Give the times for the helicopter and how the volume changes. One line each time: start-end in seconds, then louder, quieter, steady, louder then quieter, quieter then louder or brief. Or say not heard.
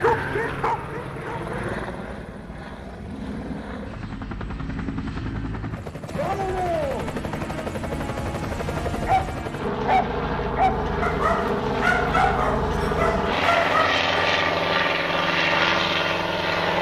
0.0-16.7 louder.